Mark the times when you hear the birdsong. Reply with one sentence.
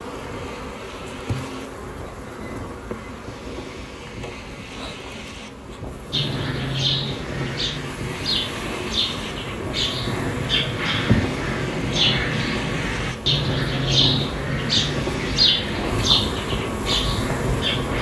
The birdsong can be heard from 6.1 to 17.9 s.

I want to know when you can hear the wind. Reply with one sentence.
The wind can be heard from 0.0 to 17.9 s.